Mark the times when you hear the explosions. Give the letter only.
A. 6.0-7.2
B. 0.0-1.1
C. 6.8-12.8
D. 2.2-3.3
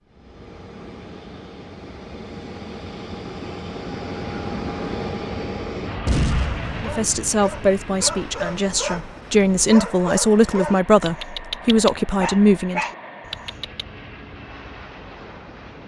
A.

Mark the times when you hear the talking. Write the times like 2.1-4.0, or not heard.
6.8-12.8.